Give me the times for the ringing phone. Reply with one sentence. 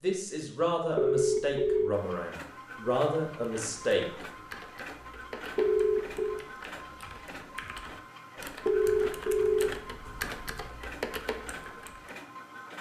The ringing phone can be heard from 0.9 to 1.9 s, from 5.5 to 6.4 s and from 8.7 to 10.7 s.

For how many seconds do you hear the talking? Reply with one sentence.
The talking can be heard for 4 seconds in total.